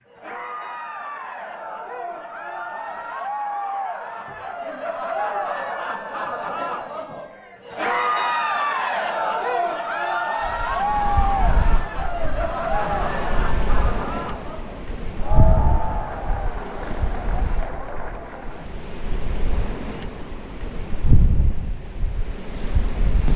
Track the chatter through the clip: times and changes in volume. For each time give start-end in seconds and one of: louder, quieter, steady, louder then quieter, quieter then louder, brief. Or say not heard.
0.1-18.7 louder then quieter.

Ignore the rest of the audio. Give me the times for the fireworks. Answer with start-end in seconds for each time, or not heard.
not heard.